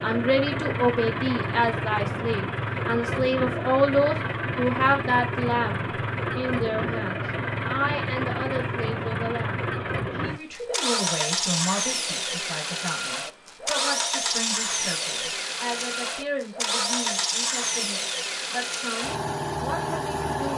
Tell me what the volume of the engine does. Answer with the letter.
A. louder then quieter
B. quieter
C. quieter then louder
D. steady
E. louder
D.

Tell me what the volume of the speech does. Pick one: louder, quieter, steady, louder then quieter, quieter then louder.
quieter.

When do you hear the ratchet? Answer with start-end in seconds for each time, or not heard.
not heard.